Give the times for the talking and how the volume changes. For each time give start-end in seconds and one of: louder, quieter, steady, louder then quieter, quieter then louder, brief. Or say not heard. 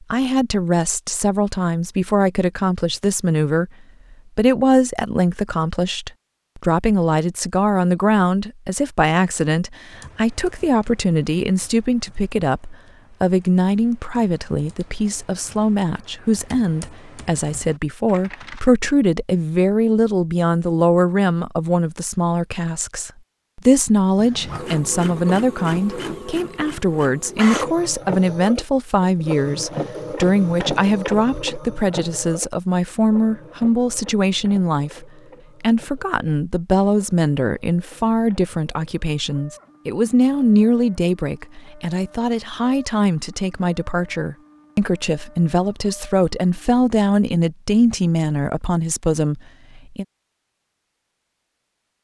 0.0-50.0 steady.